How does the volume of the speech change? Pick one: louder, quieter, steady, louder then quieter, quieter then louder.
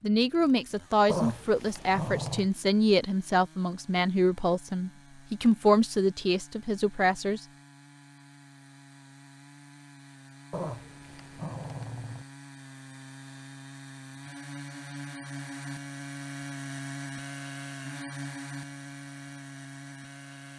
steady.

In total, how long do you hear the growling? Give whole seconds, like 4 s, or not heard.
3 s.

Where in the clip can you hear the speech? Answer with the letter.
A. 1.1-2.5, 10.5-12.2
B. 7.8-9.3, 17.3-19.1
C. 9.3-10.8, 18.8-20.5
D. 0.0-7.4
D.